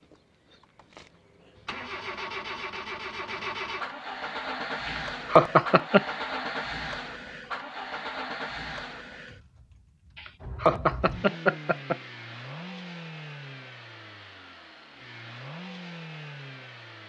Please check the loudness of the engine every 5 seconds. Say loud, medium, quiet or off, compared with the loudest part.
loud, loud, medium, medium.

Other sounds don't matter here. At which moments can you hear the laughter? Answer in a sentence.
You can hear the laughter from 4.8 to 6.0 s and from 10.2 to 11.9 s.